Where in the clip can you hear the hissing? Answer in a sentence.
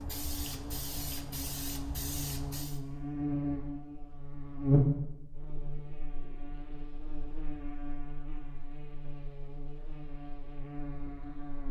You can hear the hissing from 0.0 to 2.8 s.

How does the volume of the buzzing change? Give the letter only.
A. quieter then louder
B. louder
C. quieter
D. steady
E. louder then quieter
E.